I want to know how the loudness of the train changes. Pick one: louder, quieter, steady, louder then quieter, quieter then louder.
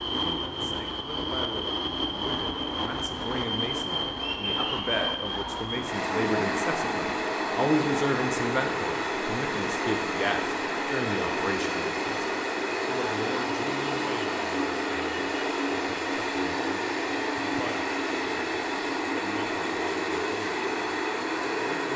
steady.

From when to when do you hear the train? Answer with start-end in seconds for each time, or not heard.
0.0-21.9.